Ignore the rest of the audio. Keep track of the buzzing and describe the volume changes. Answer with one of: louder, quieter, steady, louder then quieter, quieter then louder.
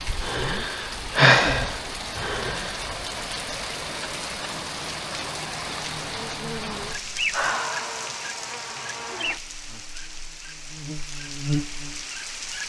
quieter then louder.